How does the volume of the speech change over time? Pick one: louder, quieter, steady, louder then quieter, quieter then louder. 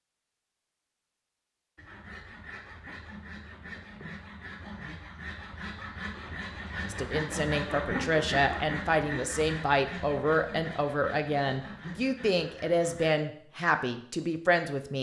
steady.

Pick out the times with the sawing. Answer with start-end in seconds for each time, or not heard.
1.8-13.1.